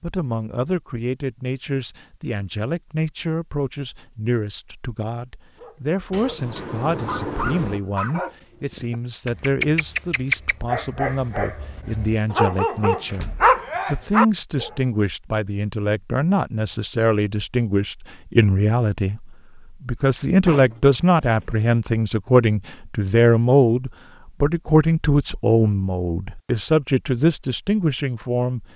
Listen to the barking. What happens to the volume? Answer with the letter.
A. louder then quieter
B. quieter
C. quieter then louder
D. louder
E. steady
D.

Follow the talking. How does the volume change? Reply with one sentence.
The loudness of the talking goes up.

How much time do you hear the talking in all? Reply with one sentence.
The talking can be heard for 29 seconds in total.